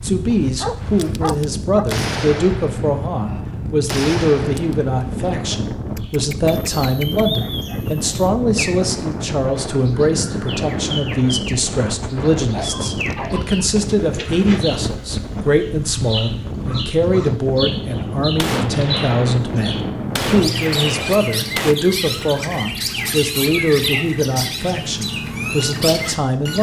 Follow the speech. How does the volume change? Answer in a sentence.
The loudness of the speech stays about the same.